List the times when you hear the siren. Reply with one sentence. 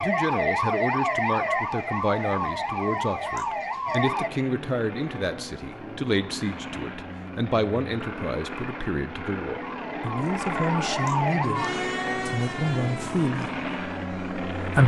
The siren can be heard from 0.0 to 4.3 s and from 9.6 to 14.7 s.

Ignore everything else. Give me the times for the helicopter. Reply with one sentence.
You can hear the helicopter from 4.0 to 14.8 s.